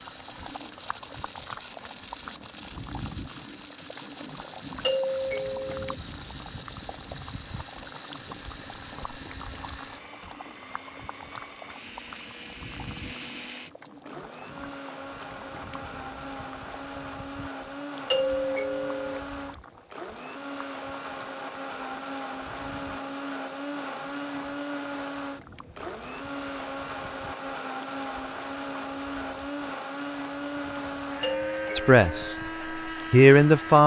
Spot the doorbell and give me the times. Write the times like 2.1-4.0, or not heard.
4.8-6.0, 18.1-19.2, 31.2-32.4.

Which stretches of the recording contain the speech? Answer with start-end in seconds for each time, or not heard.
31.8-32.4, 33.1-33.8.